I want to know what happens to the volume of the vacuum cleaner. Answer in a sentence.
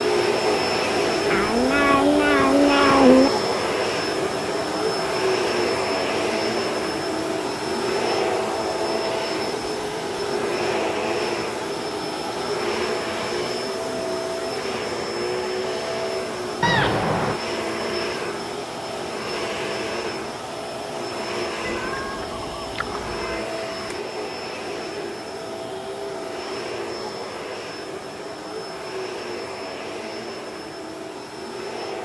The loudness of the vacuum cleaner goes down.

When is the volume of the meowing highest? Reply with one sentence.
The volume of the meowing peaks at 3 seconds.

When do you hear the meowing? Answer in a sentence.
You can hear the meowing from 1.3 to 3.3 s, from 16.6 to 17.4 s and from 21.6 to 23.4 s.